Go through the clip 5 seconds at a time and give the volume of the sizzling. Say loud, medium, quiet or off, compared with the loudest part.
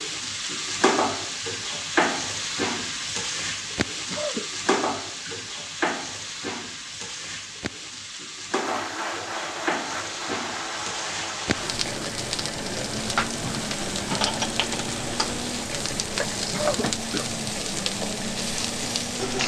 loud, medium, loud, loud.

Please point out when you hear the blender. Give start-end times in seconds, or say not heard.
8.5-19.4.